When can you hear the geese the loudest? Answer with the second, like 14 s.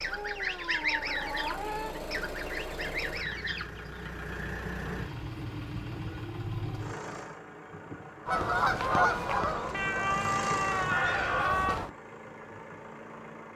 9 s.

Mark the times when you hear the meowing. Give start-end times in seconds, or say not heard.
0.1-1.9, 4.7-6.2, 9.7-11.8.